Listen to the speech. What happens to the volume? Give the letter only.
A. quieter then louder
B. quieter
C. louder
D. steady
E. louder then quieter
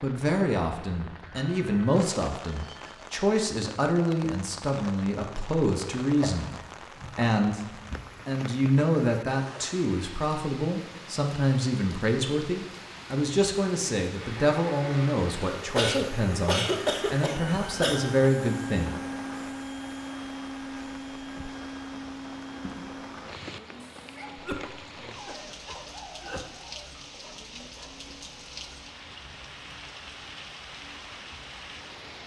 D.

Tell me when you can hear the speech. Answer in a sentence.
The speech can be heard from 0.0 to 18.9 s.